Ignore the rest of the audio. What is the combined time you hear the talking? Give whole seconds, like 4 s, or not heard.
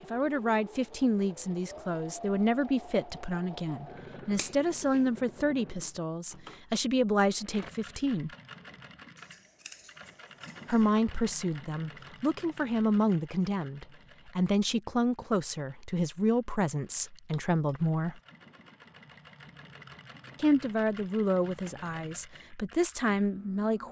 19 s.